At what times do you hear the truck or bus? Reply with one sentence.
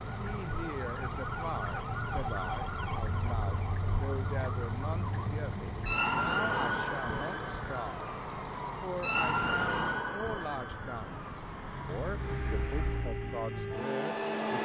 You can hear the truck or bus from 0.0 to 14.5 s.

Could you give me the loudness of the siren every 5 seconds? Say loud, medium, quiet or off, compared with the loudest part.
medium, loud, medium.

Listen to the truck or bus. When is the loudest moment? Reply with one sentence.
The loudest moment of the truck or bus is at 14 seconds.